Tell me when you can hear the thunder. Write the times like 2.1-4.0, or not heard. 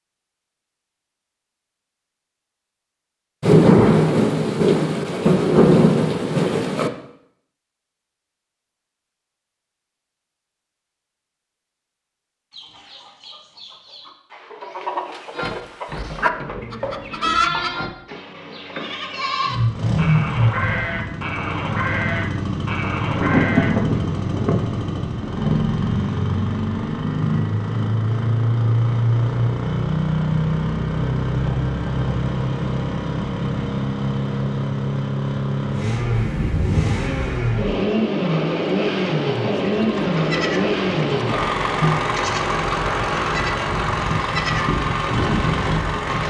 3.4-6.9, 23.1-25.6, 36.1-37.2.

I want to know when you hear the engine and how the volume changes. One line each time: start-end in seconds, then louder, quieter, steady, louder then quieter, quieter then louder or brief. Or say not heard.
19.4-46.2 steady.